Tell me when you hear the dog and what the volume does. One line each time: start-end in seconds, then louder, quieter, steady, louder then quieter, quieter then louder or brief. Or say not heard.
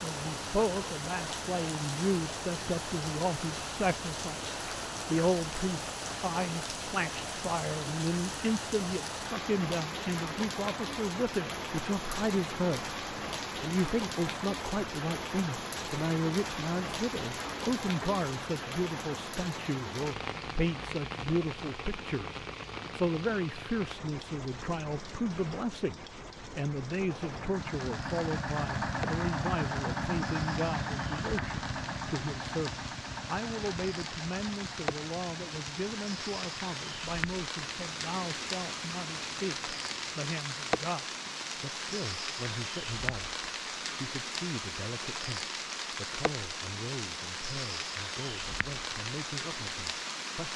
not heard.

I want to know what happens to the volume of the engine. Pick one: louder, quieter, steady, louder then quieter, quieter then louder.
quieter.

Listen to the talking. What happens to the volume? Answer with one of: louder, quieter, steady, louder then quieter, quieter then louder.
quieter.